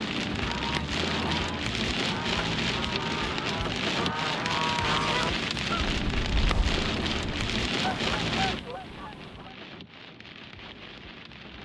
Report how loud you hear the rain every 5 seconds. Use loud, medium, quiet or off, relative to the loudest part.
loud, loud, quiet.